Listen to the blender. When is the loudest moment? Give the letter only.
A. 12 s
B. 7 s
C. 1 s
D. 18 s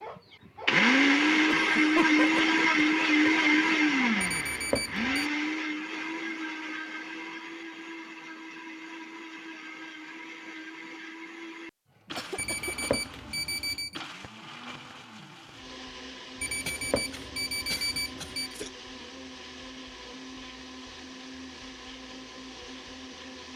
C.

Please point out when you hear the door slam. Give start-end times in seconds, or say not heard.
not heard.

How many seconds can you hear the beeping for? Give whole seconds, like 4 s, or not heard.
5 s.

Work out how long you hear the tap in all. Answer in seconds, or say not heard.
not heard.